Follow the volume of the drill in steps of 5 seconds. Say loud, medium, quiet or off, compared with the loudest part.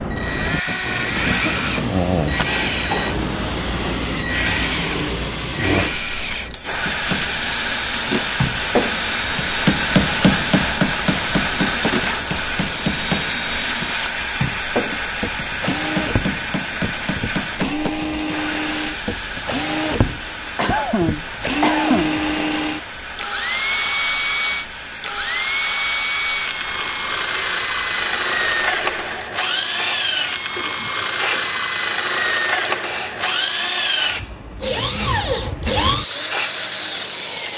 loud, medium, medium, medium, loud, loud, loud, loud.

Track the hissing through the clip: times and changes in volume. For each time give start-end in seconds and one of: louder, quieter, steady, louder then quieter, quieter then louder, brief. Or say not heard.
0.0-37.5 quieter.